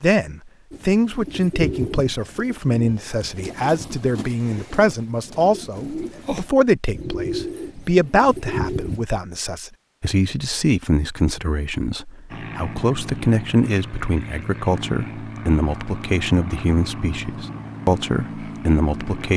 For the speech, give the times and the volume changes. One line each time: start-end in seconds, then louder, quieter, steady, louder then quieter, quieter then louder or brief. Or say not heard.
0.0-19.3 steady.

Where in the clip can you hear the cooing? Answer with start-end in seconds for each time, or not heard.
0.7-9.1.